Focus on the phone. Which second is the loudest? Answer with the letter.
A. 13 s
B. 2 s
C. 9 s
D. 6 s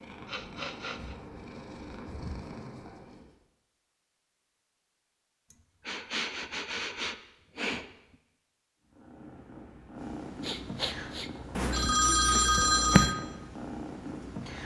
A.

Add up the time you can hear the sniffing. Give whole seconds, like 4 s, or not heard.
5 s.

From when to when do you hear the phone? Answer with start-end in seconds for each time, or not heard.
11.6-13.2.